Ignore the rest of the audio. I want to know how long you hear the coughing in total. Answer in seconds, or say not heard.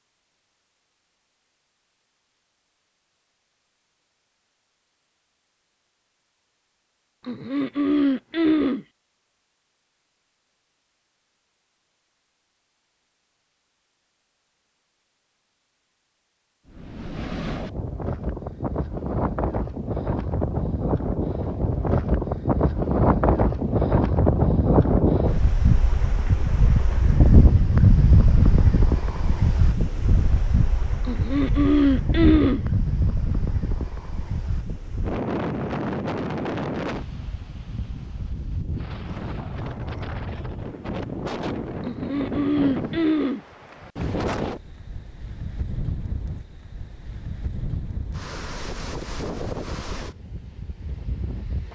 5 s.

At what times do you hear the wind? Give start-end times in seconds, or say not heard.
16.6-51.7.